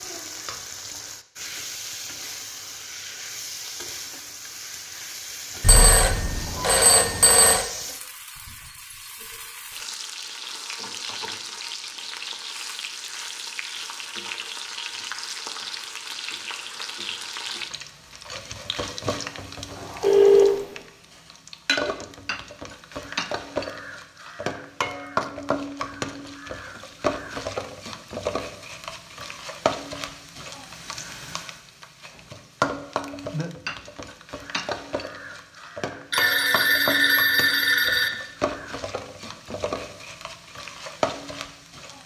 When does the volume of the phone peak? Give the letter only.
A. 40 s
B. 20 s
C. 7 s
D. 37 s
B.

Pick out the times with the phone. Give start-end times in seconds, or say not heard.
5.6-7.7, 20.0-20.6, 36.1-38.1.